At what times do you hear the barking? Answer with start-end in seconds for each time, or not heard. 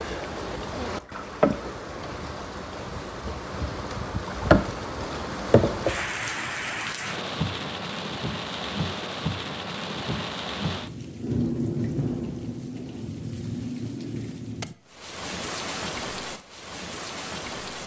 not heard.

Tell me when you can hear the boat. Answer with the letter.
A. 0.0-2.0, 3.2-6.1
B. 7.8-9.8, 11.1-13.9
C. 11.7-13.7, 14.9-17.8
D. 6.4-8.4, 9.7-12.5
A.